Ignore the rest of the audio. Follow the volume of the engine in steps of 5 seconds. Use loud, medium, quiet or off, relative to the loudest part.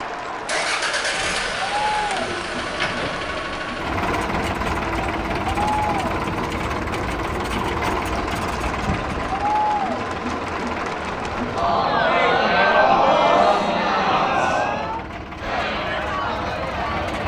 loud, loud, medium, medium.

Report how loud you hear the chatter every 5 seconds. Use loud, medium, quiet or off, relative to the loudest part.
medium, medium, loud, medium.